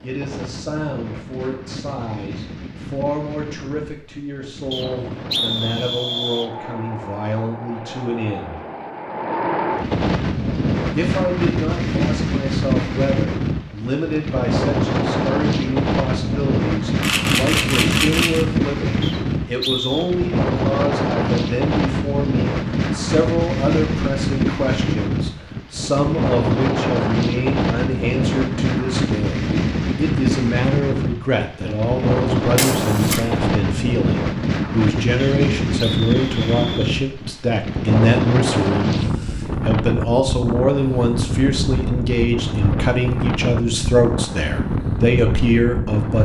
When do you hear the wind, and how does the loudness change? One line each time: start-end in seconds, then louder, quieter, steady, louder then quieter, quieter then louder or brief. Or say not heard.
0.0-46.2 louder.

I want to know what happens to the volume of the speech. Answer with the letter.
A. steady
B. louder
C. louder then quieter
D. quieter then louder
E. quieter
B.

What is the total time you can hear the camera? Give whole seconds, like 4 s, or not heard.
2 s.